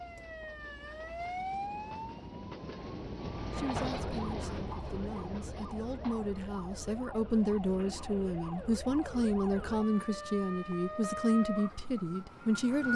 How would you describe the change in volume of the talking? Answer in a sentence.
The volume of the talking goes up.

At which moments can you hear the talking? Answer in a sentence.
The talking can be heard from 3.4 to 12.9 s.